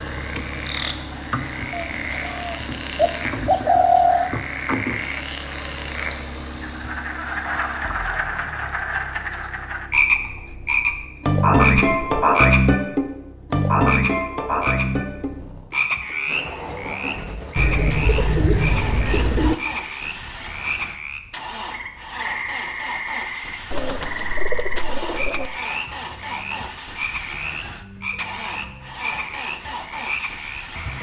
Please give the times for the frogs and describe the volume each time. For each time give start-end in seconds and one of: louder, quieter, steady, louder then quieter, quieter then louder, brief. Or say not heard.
0.0-30.9 louder then quieter.